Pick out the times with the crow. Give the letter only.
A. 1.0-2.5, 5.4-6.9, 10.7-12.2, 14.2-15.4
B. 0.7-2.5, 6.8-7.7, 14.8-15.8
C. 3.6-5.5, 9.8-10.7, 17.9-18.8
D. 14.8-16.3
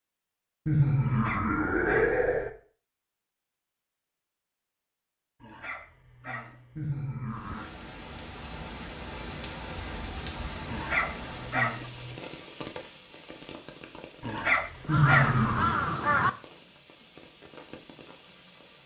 D.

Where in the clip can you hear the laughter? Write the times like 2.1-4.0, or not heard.
0.7-2.5, 6.8-7.7, 14.8-15.8.